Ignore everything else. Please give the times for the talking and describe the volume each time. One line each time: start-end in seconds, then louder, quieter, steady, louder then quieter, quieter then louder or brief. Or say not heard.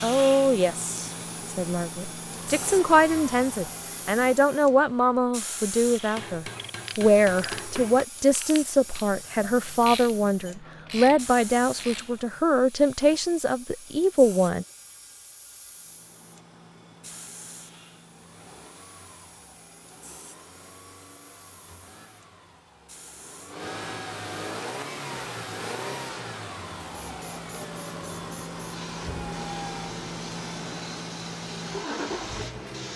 0.0-14.7 steady.